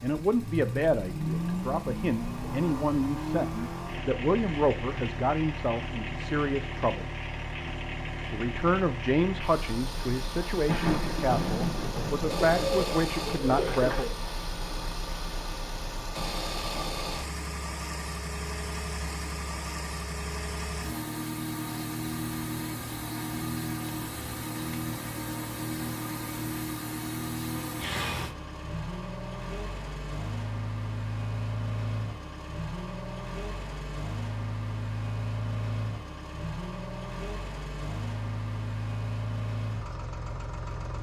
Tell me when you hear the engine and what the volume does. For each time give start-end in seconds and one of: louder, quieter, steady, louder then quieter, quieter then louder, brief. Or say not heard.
0.0-40.9 steady.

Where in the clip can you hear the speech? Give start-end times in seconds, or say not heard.
0.0-7.0, 8.3-14.1.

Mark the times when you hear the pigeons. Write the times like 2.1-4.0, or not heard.
12.1-14.1.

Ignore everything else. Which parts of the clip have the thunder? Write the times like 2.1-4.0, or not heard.
10.7-12.7.